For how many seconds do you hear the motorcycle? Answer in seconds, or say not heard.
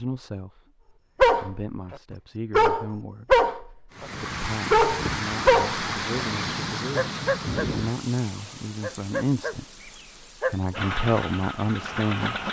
2 s.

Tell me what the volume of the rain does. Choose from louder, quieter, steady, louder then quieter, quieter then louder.
quieter.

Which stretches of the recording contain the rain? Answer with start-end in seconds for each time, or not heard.
3.9-12.4.